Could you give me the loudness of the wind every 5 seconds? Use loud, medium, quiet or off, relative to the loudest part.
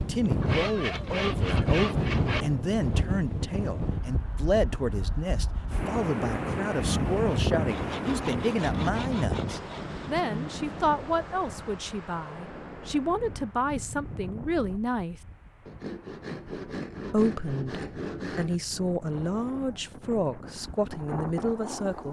loud, loud, medium, quiet, medium.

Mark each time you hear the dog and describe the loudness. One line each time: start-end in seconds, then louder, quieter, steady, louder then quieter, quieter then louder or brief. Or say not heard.
not heard.